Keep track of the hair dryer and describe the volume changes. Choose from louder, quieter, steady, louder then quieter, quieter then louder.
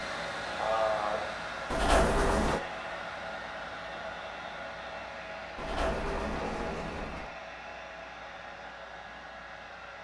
quieter.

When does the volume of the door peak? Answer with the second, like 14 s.
2 s.